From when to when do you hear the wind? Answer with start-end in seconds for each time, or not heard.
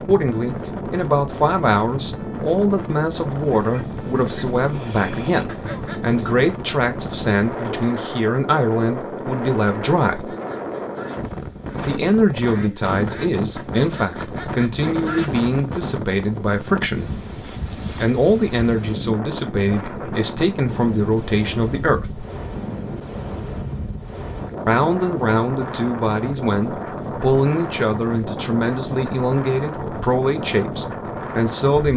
0.0-31.9.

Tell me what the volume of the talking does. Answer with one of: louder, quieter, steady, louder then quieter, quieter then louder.
steady.